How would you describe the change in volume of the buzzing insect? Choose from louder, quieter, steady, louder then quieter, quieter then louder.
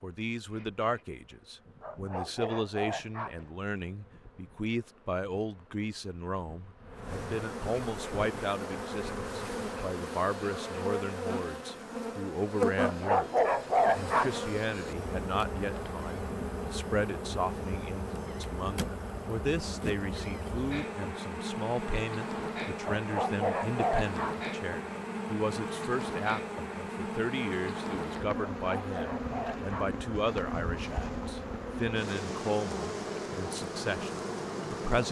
louder.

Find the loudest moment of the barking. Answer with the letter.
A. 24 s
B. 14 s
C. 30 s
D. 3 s
B.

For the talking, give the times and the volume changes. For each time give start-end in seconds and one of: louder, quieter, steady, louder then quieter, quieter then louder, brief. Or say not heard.
0.0-35.0 steady.